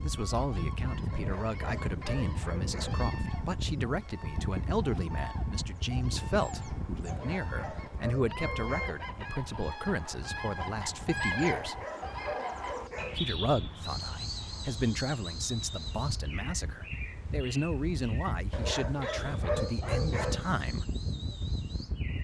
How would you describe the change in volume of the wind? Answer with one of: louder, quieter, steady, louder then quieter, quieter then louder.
quieter then louder.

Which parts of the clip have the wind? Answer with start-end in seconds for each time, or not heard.
0.0-22.1.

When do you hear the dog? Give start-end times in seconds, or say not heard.
1.1-3.0, 7.0-9.1, 11.3-13.2, 18.5-20.4.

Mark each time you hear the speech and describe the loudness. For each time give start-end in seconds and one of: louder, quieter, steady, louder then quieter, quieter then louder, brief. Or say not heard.
0.0-11.8 steady
13.2-20.9 steady.